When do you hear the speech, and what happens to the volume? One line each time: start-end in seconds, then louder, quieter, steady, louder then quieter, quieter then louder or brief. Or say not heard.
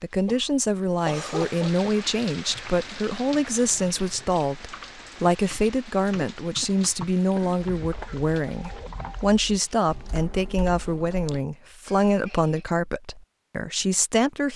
0.0-14.5 steady.